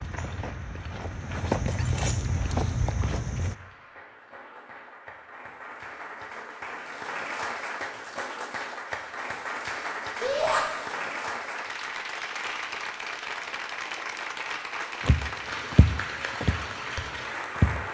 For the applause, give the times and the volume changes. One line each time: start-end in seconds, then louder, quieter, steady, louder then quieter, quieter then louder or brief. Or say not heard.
0.0-17.8 louder.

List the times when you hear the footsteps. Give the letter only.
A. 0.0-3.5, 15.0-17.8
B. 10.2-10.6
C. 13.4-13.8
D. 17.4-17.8
A.